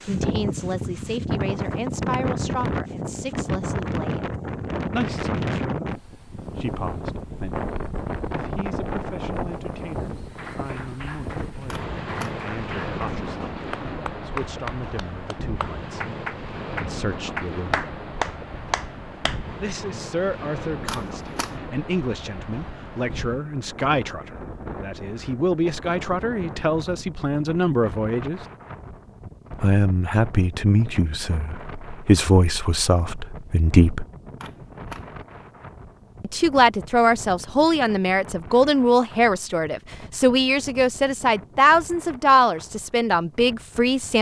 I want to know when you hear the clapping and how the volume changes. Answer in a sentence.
You can hear the clapping from 10.3 to 19.4 s, getting louder.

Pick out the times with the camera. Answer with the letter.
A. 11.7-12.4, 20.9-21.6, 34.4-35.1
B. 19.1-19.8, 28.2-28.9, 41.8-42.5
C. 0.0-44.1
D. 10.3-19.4
A.